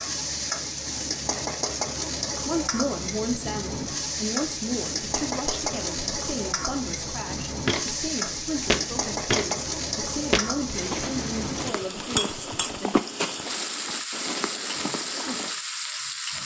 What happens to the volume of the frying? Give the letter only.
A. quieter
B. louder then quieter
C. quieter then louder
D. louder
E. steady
E.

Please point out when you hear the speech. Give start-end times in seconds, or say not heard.
2.5-13.0.